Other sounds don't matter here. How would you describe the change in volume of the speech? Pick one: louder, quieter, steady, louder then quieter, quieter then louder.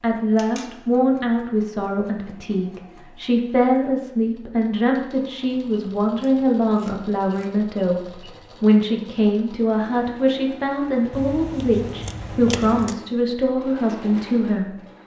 steady.